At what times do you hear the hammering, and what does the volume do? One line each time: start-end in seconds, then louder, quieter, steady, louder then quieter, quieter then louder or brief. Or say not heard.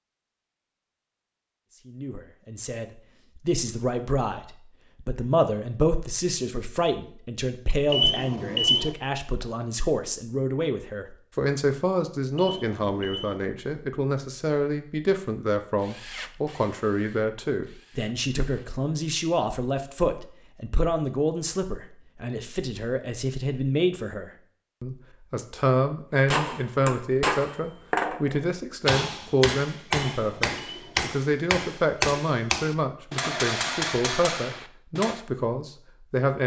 26.3-35.2 steady.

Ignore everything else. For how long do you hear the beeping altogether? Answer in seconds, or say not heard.
3 s.